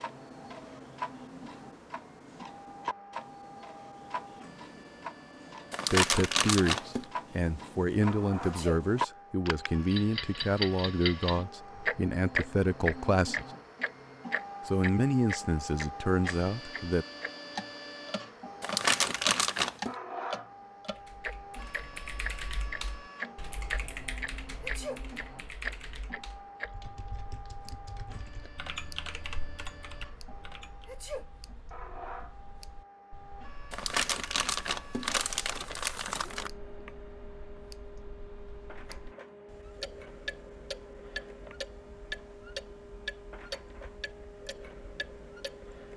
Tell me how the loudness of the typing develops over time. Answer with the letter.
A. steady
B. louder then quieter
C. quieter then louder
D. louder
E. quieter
C.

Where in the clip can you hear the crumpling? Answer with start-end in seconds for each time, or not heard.
5.7-7.0, 18.6-19.9, 33.7-36.5.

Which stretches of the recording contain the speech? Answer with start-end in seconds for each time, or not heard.
5.9-13.4, 14.7-17.1.